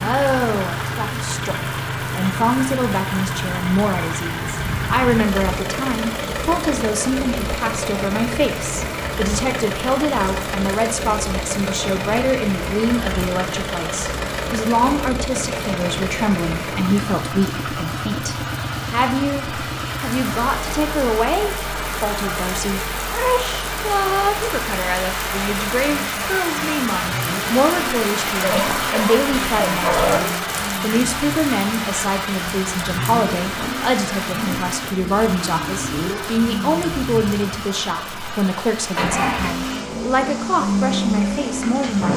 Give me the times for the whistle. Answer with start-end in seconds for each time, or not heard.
not heard.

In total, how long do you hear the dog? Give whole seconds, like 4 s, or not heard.
2 s.